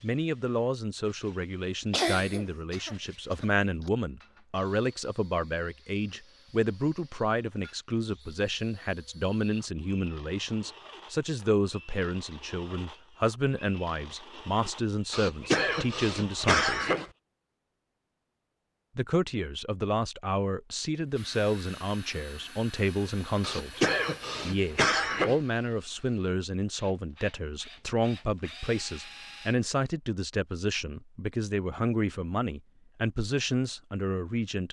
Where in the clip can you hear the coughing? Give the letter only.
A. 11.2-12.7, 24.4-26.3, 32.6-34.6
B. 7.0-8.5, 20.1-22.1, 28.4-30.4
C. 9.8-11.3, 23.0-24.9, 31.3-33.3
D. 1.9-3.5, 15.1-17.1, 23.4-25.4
D.